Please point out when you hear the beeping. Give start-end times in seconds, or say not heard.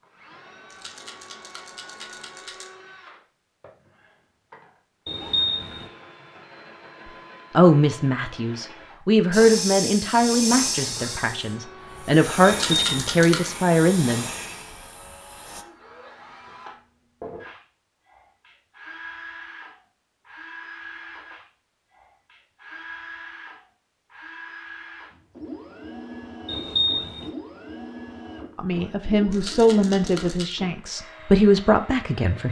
5.0-5.8, 12.4-13.1, 26.4-27.3.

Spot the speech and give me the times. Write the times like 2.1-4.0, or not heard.
7.5-14.2, 28.6-32.4.